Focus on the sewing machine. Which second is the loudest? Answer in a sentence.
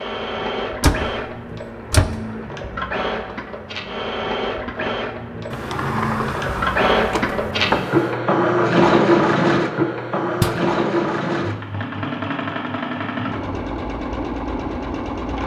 The volume of the sewing machine peaks at 9 seconds.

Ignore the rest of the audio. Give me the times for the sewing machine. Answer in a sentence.
The sewing machine can be heard from 0.0 to 15.4 s.